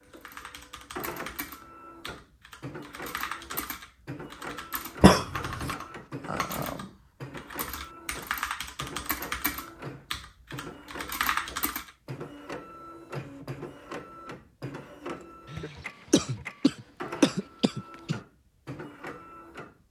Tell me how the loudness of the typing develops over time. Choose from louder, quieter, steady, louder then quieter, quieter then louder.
louder.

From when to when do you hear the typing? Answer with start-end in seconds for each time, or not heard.
0.1-11.9.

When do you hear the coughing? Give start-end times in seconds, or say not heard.
5.0-5.8, 15.5-18.2.